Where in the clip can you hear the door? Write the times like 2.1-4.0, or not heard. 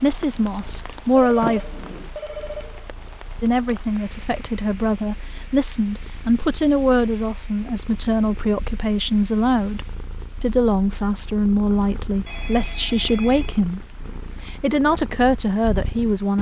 1.4-2.1.